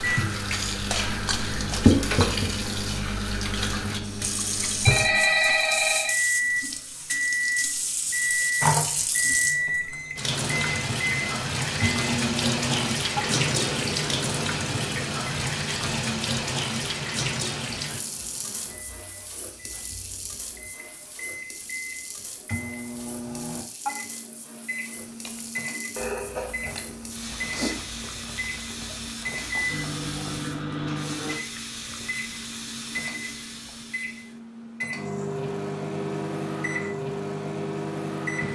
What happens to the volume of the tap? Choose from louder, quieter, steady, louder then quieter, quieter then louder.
quieter then louder.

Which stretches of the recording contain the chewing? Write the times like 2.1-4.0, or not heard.
25.0-30.4.